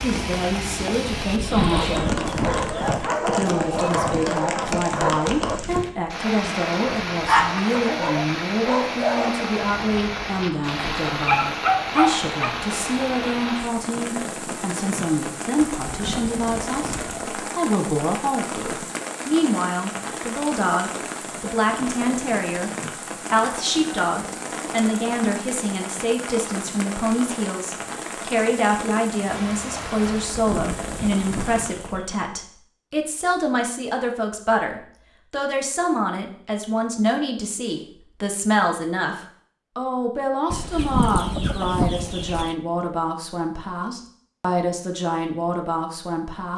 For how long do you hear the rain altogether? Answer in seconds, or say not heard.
32 s.